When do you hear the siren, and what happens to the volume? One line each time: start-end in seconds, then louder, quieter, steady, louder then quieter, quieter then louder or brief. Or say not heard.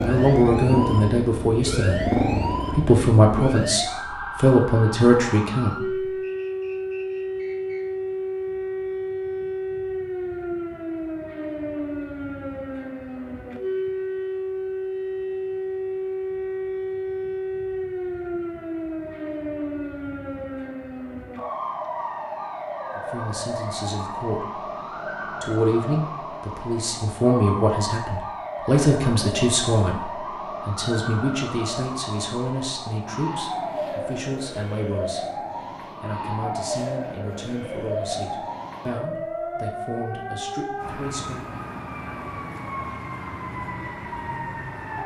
0.0-45.0 steady.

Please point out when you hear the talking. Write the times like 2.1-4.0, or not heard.
0.0-6.0, 22.9-41.5.